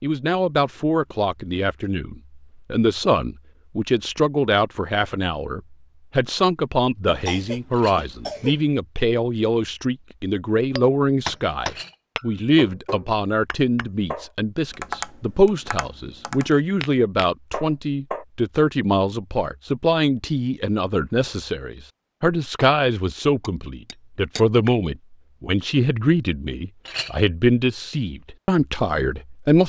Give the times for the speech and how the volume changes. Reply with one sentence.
The speech can be heard from 0.0 to 29.6 s, at a steady volume.